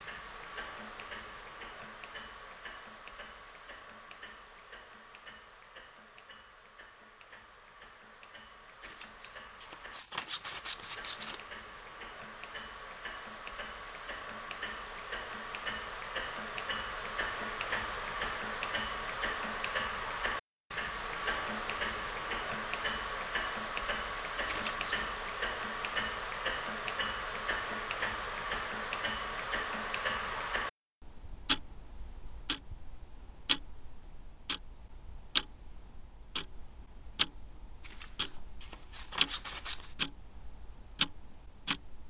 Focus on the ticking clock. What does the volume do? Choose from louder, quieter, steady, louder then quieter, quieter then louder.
louder.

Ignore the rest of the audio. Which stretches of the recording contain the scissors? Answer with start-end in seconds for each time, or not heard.
8.8-11.4, 24.4-25.1, 37.8-40.0.